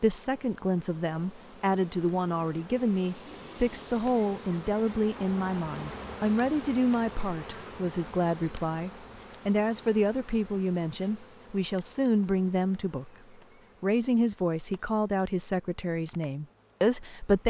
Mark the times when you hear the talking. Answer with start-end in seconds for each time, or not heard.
0.0-13.1, 13.8-17.4.